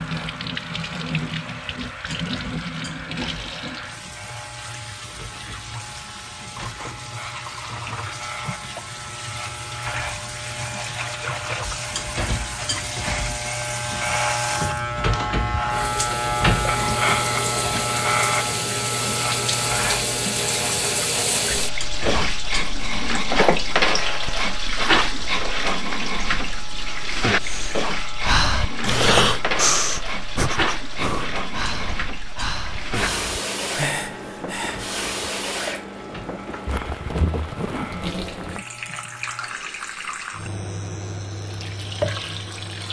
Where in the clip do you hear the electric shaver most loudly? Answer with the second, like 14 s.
17 s.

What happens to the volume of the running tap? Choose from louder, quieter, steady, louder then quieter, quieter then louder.
louder then quieter.